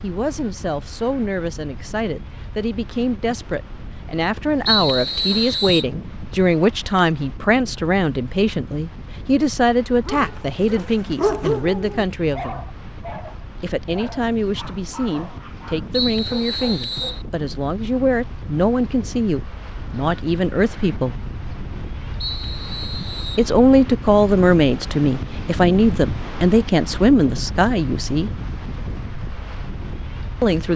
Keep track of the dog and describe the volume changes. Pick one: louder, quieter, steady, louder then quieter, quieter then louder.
quieter.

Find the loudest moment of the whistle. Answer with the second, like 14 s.
5 s.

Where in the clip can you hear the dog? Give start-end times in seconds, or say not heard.
10.0-17.2.